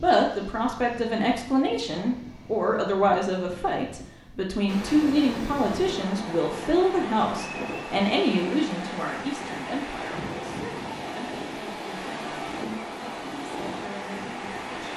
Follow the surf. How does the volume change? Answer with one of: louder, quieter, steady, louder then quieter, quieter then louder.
steady.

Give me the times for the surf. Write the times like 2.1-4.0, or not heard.
4.7-14.9.